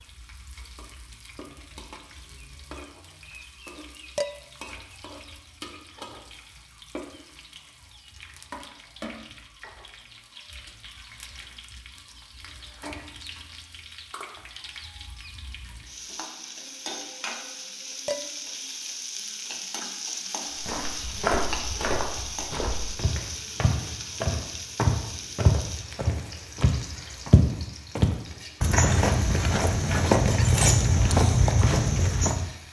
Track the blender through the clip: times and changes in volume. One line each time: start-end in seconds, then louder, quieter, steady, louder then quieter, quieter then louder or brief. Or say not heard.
not heard.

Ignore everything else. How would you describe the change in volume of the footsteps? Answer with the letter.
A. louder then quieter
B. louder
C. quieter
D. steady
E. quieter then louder
B.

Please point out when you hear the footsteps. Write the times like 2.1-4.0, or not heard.
20.6-32.5.